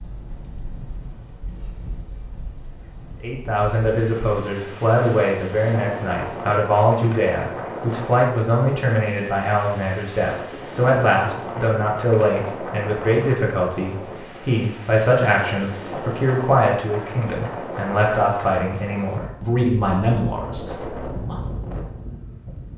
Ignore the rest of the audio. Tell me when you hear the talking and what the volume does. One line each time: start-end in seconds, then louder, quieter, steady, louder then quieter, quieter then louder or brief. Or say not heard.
3.2-21.4 steady.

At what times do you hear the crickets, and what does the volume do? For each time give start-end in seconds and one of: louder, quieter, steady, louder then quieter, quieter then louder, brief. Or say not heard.
not heard.